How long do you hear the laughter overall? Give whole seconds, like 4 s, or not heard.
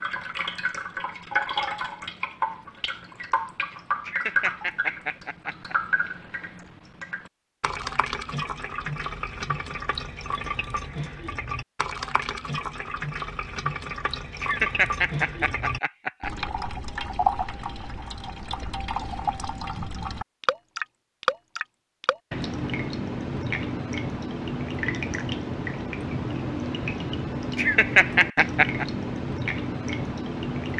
5 s.